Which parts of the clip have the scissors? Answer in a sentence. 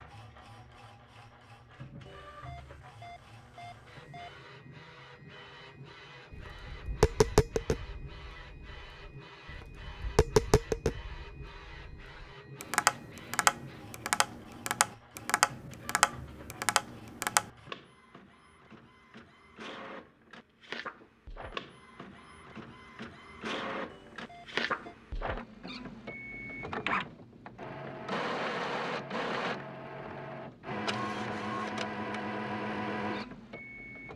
You can't hear the scissors here.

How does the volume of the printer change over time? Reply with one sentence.
The loudness of the printer goes up.